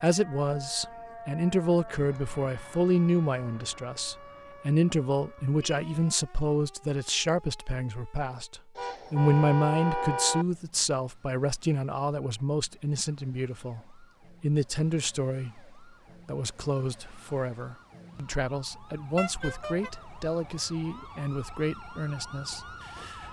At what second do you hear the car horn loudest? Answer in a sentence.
The volume of the car horn peaks at 10 seconds.